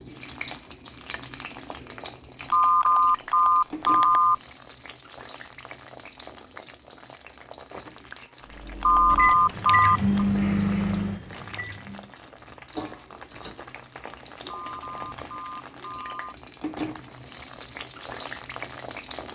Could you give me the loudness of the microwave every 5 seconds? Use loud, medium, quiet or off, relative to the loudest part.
off, medium, loud, off.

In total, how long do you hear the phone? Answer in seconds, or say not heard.
5 s.